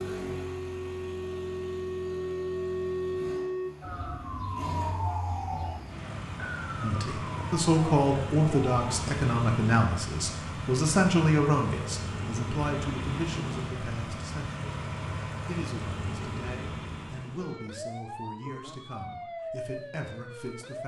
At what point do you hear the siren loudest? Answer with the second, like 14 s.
3 s.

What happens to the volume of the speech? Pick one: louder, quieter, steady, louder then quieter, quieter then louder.
quieter.